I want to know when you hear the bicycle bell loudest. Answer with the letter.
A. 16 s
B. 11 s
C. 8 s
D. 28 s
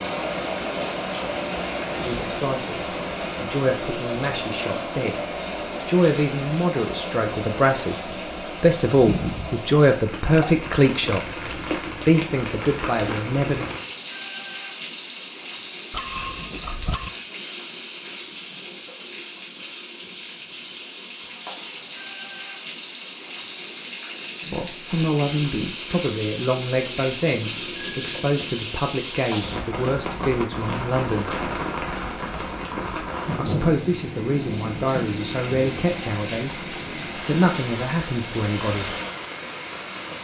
A.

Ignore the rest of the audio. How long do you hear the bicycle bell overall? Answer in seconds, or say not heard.
4 s.